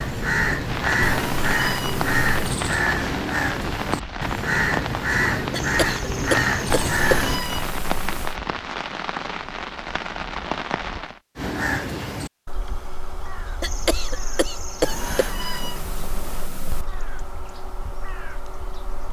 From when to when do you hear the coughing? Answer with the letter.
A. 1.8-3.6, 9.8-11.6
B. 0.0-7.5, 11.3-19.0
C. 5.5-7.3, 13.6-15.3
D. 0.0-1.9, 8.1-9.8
C.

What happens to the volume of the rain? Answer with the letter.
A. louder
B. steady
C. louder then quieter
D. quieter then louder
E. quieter
B.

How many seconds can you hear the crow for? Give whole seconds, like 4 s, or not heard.
15 s.